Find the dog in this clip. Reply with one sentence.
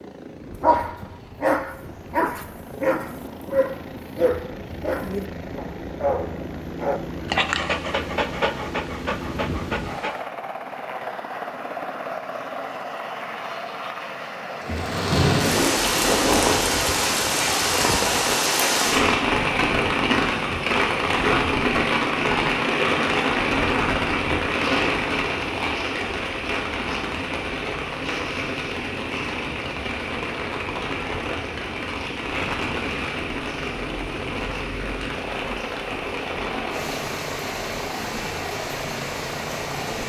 You can hear the dog from 0.6 to 10.2 s.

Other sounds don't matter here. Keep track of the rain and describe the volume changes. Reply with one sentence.
The volume of the rain goes down.